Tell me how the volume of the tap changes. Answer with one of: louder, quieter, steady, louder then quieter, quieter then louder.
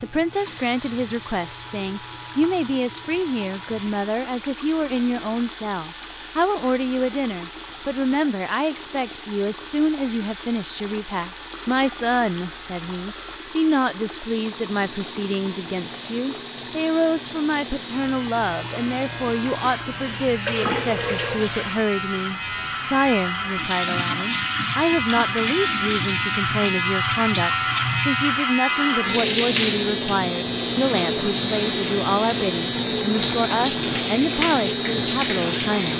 louder.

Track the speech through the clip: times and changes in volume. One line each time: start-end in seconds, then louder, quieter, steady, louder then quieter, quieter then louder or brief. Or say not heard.
0.0-35.9 steady.